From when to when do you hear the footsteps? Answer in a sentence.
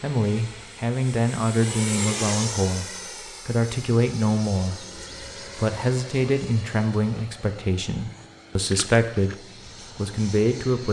The footsteps can't be heard in this clip.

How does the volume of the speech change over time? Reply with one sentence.
The volume of the speech stays about the same.